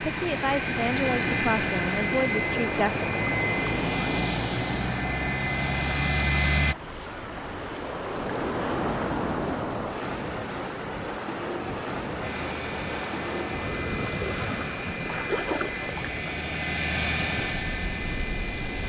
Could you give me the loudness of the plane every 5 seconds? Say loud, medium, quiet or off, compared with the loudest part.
loud, loud, medium, medium.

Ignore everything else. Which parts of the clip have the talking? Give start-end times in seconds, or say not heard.
0.0-3.0.